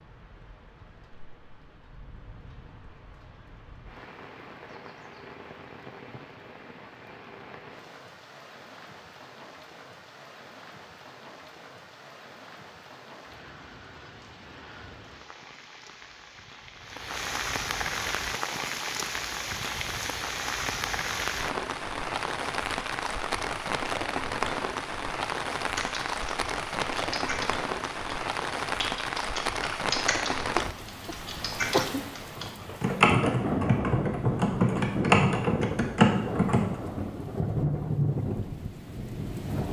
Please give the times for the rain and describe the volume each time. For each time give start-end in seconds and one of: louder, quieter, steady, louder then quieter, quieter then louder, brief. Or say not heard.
0.0-39.6 louder.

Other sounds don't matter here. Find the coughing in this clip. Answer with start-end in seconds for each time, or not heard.
30.6-32.1.